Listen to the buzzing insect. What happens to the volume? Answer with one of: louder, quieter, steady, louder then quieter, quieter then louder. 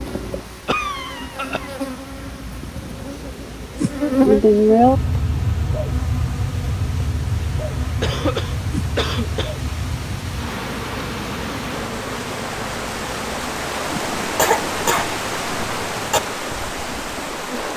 louder then quieter.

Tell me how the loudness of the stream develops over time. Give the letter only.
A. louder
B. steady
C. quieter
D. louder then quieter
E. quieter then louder
A.